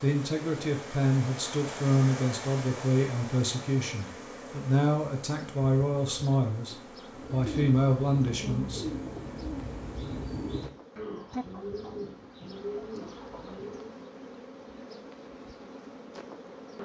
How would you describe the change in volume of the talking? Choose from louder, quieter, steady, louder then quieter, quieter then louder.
steady.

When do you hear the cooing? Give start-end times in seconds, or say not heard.
7.1-14.0.